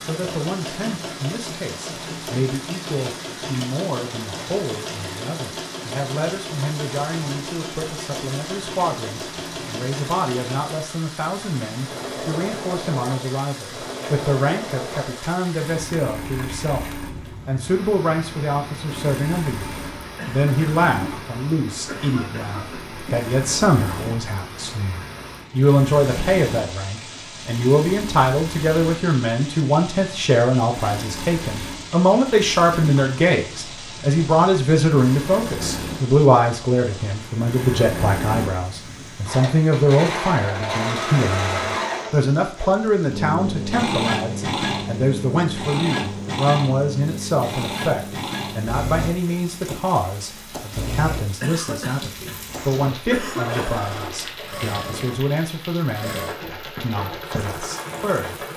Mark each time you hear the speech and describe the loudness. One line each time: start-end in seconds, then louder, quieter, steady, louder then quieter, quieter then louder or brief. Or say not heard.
0.1-58.5 louder then quieter.